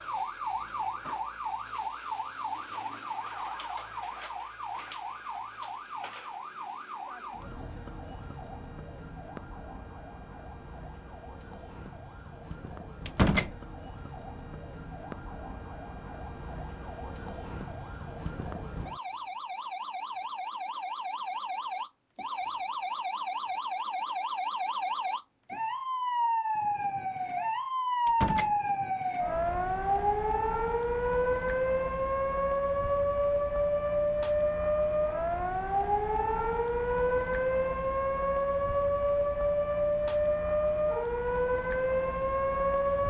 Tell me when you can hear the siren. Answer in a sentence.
You can hear the siren from 0.0 to 43.0 s.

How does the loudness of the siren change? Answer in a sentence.
The volume of the siren goes down, then up.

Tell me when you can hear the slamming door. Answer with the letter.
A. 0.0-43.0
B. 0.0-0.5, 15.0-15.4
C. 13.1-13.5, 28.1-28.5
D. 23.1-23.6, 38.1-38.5
C.